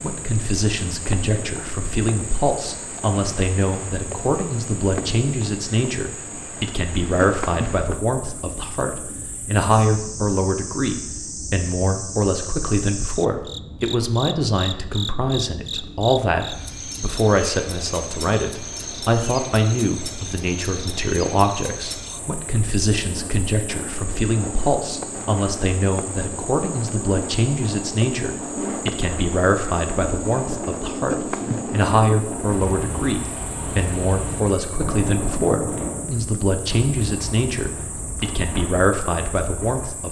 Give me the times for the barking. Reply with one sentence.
You can't hear the barking here.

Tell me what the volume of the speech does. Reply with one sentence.
The loudness of the speech stays about the same.